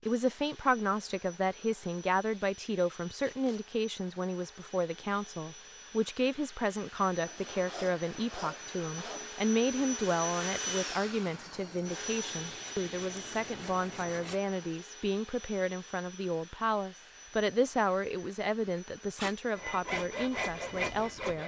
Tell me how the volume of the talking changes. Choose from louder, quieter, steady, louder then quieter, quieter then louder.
steady.